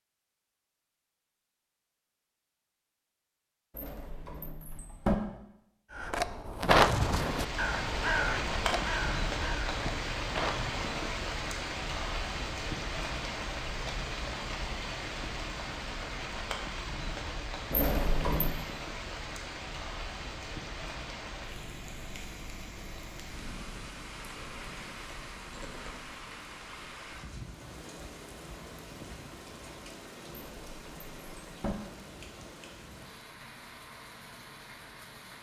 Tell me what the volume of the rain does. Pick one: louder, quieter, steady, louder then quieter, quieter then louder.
quieter.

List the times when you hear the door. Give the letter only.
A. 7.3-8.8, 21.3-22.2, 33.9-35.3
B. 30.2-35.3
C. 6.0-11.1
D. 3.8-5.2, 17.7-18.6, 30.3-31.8
D.